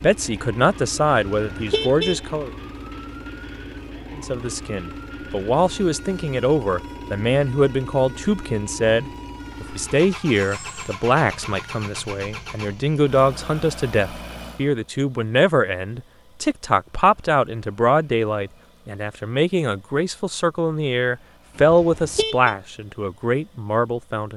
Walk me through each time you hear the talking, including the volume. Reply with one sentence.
The talking can be heard briefly from 0.0 to 2.5 s; and from 4.2 to 24.3 s, at a steady volume.